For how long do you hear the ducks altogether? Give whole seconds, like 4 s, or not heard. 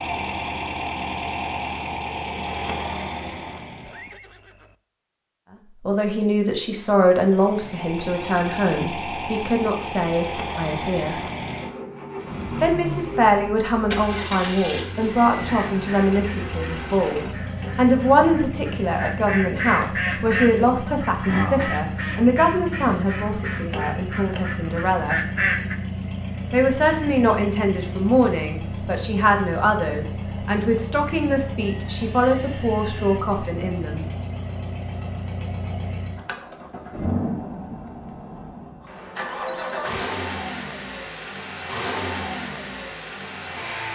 10 s.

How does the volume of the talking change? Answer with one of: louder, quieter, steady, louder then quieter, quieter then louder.
steady.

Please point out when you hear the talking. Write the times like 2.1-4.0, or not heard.
5.8-11.2, 12.6-25.2, 26.5-34.0.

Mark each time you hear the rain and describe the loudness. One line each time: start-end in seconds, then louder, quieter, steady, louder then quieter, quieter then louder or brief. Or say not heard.
not heard.